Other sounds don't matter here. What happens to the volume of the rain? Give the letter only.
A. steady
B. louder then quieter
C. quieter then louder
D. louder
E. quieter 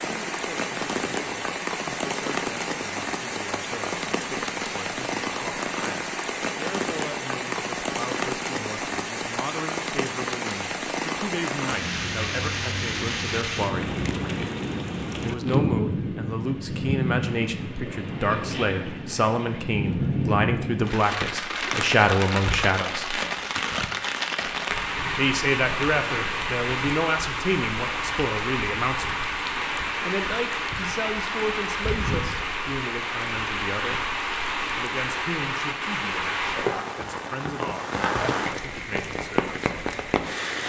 A.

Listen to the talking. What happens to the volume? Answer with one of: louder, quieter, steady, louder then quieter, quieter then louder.
louder then quieter.